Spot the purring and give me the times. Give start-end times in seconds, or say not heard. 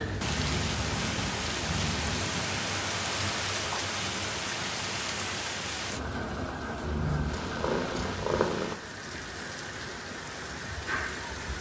0.0-2.2, 6.8-8.8.